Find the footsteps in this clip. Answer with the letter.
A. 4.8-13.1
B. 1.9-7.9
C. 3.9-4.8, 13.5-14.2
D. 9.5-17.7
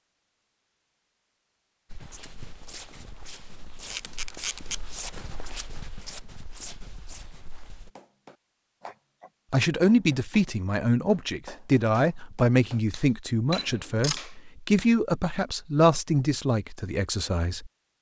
B.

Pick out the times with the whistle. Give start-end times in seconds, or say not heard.
not heard.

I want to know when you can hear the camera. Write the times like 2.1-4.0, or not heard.
3.9-4.8, 13.5-14.2.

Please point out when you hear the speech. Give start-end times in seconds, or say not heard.
9.5-17.7.